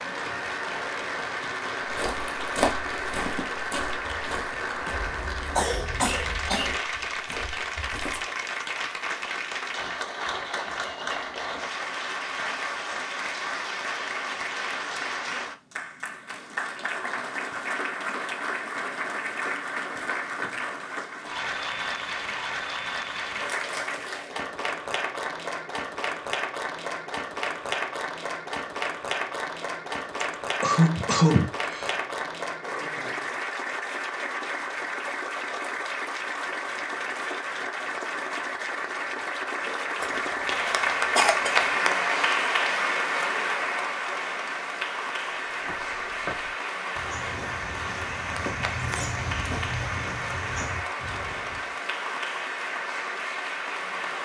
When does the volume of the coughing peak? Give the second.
31 s.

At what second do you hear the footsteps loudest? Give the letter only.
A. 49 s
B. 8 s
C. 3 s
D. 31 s
C.